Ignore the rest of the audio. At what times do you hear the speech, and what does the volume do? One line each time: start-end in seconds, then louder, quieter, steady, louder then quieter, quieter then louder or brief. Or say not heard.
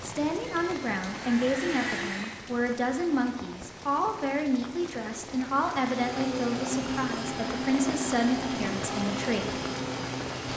0.0-9.5 steady.